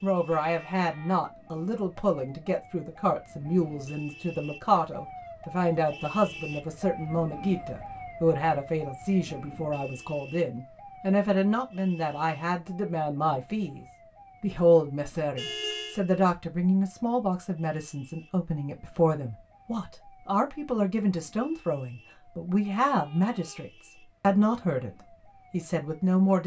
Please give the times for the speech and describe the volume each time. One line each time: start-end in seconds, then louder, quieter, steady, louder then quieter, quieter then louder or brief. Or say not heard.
0.0-24.9 steady
25.5-26.4 brief.